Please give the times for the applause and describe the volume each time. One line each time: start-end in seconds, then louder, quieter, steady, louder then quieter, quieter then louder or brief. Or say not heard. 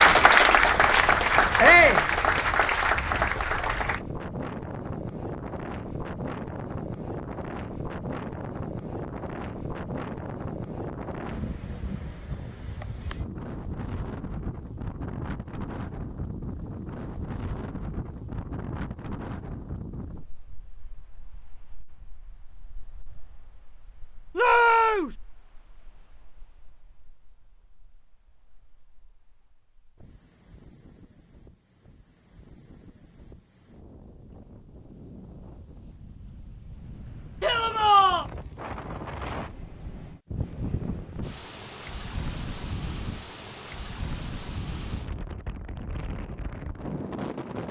0.0-4.0 quieter.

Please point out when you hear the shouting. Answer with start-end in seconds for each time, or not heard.
1.6-2.0, 24.4-25.1, 37.4-38.2.